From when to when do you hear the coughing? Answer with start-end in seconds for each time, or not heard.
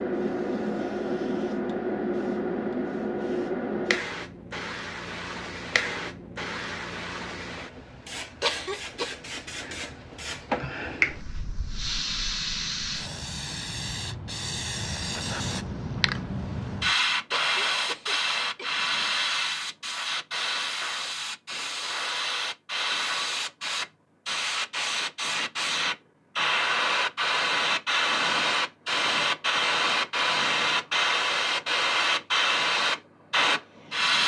8.4-9.1, 17.3-18.7.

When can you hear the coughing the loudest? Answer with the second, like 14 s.
9 s.